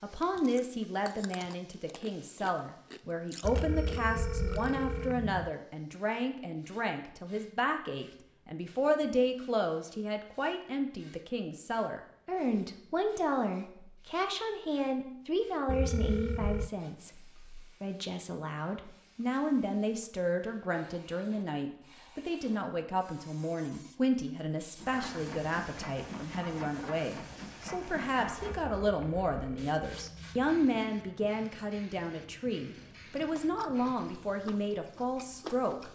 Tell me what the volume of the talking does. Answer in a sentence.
The volume of the talking stays about the same.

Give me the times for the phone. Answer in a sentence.
You can hear the phone from 3.4 to 5.5 s, from 15.7 to 16.7 s and from 28.4 to 30.7 s.